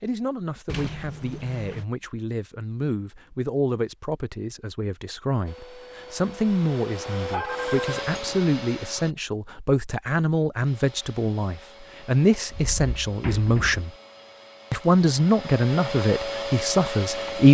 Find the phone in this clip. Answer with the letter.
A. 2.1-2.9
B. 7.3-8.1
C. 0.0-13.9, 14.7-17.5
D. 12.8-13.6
B.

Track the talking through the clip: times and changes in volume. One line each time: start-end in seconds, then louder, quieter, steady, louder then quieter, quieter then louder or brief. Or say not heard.
0.0-13.9 louder
14.7-17.5 brief.